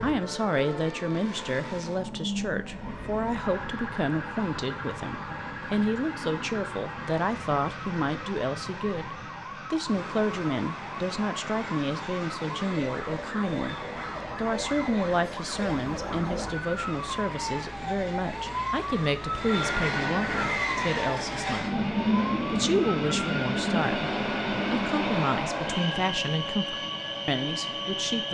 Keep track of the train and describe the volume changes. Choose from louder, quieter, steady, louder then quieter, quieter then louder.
louder.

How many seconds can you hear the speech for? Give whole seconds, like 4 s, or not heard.
28 s.